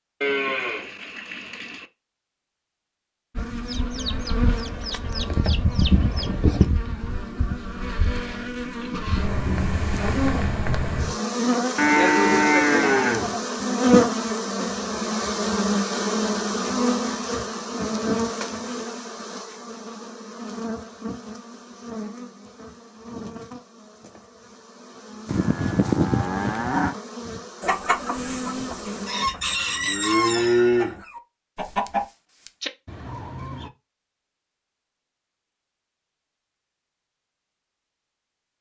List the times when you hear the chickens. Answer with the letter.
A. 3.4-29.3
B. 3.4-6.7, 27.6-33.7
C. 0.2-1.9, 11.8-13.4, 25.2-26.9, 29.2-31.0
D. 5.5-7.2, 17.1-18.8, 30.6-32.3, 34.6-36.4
B.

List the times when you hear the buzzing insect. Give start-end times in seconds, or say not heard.
3.4-29.3.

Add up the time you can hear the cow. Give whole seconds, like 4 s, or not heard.
7 s.